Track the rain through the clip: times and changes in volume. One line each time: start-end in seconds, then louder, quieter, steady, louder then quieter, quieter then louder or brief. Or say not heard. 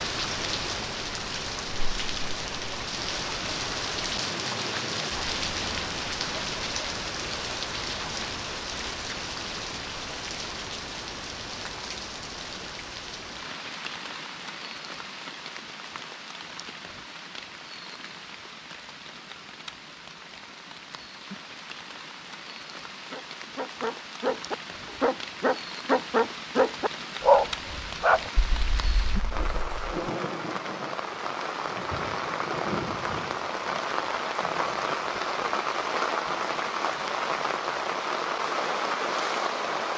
0.0-39.9 quieter then louder.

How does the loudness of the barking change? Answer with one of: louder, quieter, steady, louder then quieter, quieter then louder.
louder then quieter.